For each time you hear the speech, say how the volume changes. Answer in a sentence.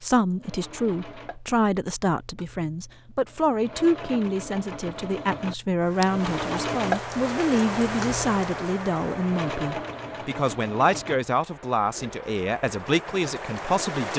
You can hear the speech from 0.0 to 14.1 s, at a steady volume.